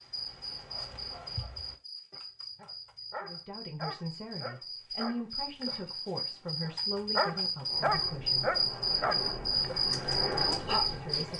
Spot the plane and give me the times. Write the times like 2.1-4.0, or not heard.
7.6-11.3.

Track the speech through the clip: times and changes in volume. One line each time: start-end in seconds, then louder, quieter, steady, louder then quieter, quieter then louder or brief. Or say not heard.
3.2-8.6 steady
10.7-11.3 brief.